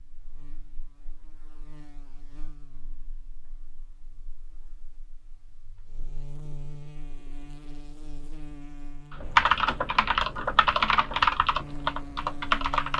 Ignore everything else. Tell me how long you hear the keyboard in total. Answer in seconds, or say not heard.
4 s.